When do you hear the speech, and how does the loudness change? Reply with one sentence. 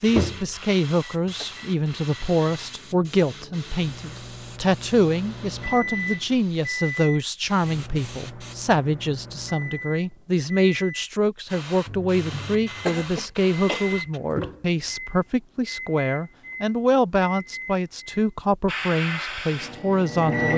The speech can be heard from 0.0 to 20.5 s, at a steady volume.